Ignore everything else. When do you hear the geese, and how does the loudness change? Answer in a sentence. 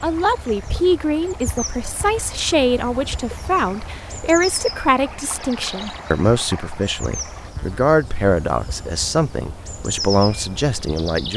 The geese can't be heard in this clip.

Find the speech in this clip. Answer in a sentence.
The speech can be heard from 0.0 to 11.3 s.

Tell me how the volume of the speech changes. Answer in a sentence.
The loudness of the speech stays about the same.